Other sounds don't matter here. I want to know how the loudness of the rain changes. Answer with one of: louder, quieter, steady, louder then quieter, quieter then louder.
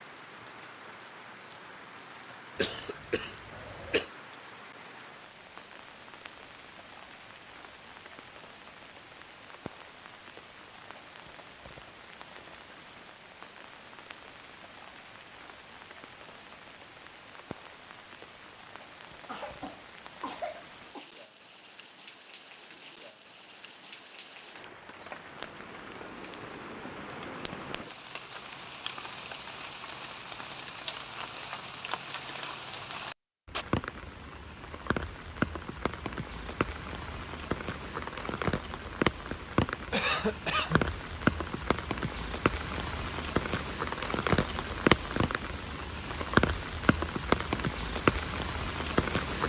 louder.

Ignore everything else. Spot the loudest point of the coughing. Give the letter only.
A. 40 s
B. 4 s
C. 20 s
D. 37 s
A.